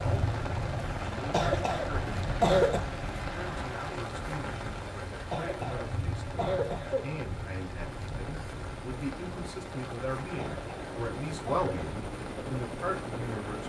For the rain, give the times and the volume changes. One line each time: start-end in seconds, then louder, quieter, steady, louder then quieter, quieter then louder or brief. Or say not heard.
0.0-13.6 quieter.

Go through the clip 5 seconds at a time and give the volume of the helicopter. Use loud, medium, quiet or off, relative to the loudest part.
loud, medium, loud.